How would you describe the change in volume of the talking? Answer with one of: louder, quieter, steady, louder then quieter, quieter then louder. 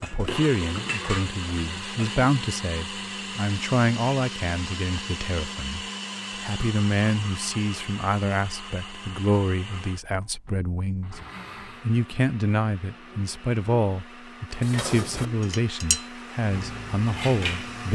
steady.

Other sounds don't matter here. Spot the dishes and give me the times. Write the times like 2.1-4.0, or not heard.
0.0-2.2, 14.6-17.8.